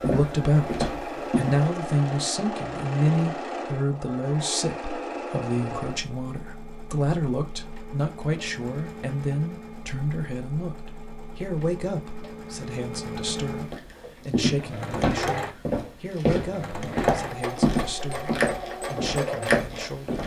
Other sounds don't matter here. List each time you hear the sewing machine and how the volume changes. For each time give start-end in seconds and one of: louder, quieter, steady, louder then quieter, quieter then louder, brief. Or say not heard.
0.0-20.1 quieter then louder.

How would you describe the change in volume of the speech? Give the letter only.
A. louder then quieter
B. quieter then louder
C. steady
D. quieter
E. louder
D.